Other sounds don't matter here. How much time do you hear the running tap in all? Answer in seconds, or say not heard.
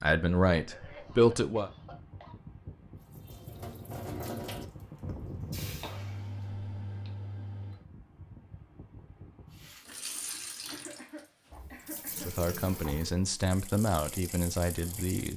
9 s.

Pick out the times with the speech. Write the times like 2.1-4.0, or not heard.
0.0-1.7, 12.2-15.3.